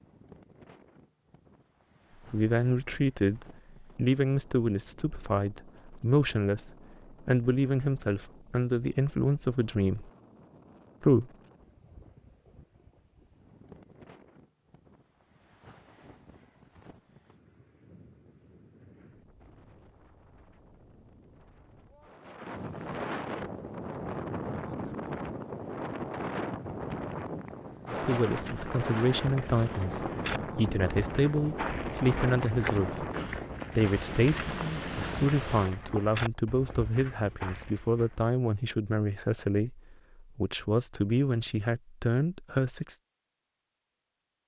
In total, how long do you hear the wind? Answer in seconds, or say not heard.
36 s.